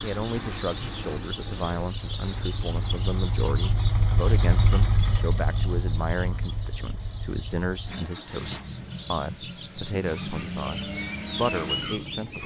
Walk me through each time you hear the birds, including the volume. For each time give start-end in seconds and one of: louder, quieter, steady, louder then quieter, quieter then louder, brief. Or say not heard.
0.0-12.4 quieter then louder.